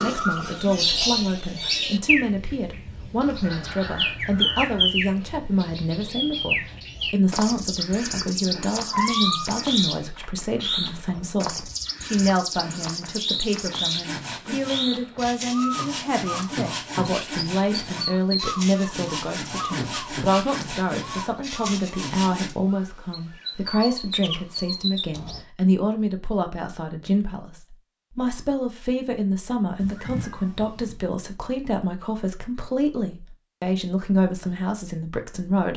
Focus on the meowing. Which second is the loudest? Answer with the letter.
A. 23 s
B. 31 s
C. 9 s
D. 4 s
C.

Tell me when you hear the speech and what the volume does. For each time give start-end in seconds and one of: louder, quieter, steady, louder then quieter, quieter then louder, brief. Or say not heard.
0.0-35.7 steady.